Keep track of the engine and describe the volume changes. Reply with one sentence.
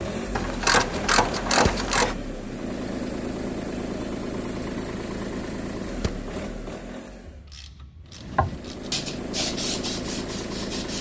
The volume of the engine goes down, then up.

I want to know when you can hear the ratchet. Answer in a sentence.
The ratchet can be heard from 0.3 to 2.1 s and from 7.2 to 8.9 s.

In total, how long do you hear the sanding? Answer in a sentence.
You can hear the sanding for 3 seconds altogether.